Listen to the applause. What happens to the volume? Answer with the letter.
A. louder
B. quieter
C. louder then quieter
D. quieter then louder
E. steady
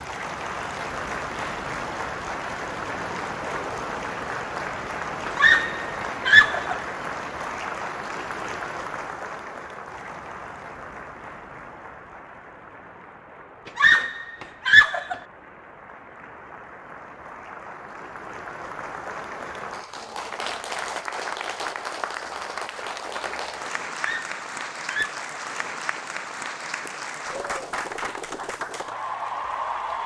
D.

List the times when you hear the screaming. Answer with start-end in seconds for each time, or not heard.
5.3-6.8, 13.8-15.2, 24.0-25.3.